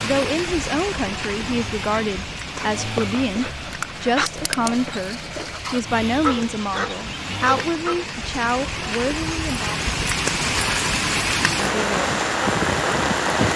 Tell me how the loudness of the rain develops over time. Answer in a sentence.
The volume of the rain goes down, then up.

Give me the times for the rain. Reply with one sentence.
You can hear the rain from 0.0 to 13.5 s.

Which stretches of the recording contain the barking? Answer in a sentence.
The barking can be heard from 2.5 to 8.1 s.